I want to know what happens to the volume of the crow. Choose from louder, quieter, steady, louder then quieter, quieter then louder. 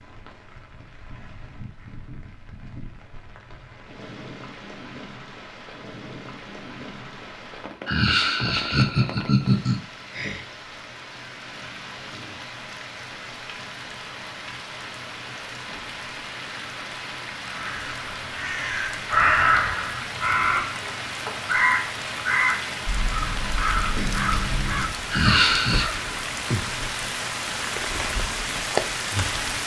louder then quieter.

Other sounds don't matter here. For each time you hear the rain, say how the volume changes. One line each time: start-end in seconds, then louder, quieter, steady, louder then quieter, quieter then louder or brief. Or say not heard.
0.0-29.6 louder.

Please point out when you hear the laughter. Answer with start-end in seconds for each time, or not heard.
7.8-9.8, 25.1-25.9.